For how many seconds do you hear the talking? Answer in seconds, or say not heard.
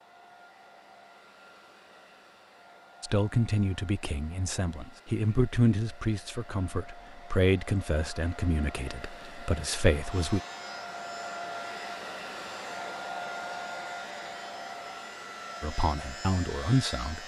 9 s.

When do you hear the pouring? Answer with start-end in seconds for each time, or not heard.
not heard.